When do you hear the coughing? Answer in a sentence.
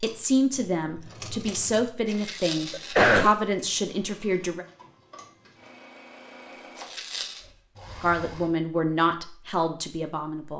You can hear the coughing from 2.1 to 3.3 s.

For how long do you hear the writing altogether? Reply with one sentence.
You can't hear the writing here.